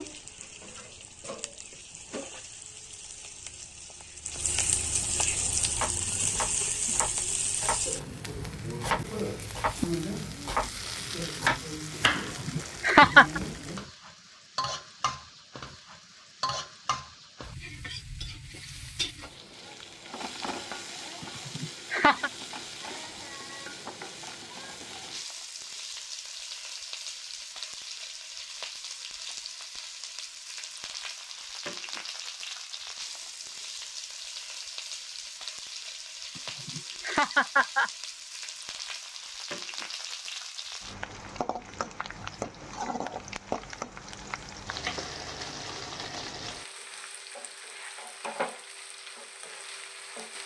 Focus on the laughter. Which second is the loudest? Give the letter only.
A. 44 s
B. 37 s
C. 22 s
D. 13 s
D.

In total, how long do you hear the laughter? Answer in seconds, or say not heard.
4 s.